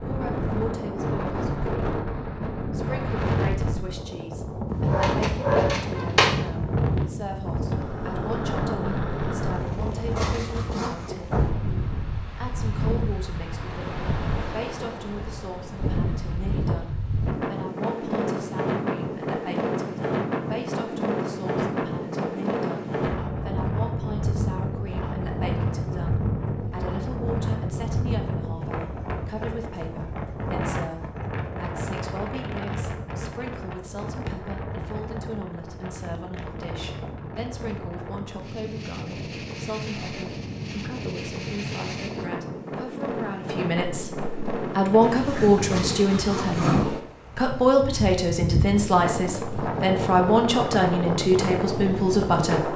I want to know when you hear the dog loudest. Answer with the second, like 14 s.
6 s.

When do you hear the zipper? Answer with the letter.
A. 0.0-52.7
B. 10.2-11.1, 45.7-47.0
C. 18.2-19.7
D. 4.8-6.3
B.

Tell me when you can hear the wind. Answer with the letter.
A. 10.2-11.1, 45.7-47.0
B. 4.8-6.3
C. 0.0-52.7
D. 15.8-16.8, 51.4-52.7
C.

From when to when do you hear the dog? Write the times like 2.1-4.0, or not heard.
4.8-6.3.